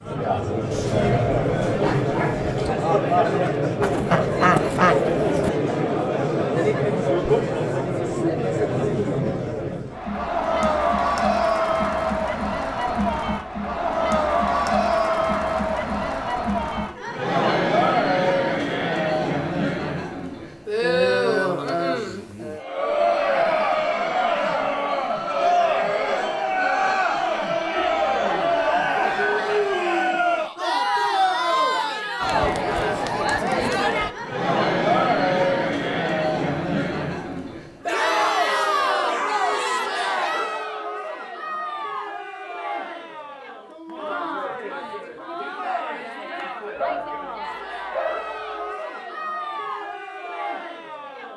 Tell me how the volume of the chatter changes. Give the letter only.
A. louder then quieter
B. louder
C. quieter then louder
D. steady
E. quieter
E.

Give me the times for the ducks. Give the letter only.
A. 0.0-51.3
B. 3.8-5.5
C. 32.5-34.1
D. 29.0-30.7
B.